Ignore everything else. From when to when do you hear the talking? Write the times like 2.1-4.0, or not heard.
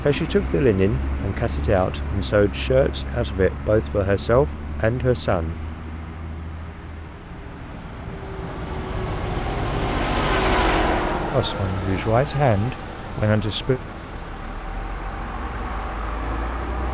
0.0-5.6, 11.3-13.8.